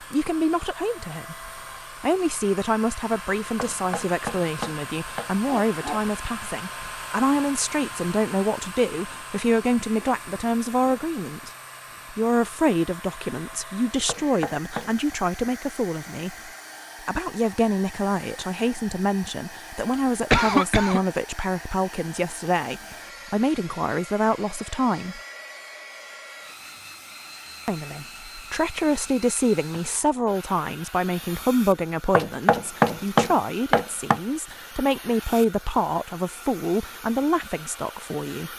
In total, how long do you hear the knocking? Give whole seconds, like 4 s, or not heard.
5 s.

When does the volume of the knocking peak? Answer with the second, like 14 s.
33 s.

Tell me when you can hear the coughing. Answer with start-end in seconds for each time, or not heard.
19.9-21.0.